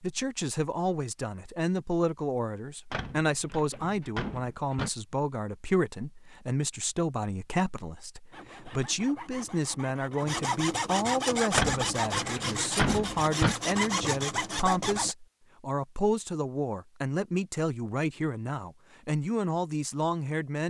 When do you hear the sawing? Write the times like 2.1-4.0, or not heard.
8.3-15.2.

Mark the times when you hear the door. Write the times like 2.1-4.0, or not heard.
2.9-4.9, 11.5-13.6.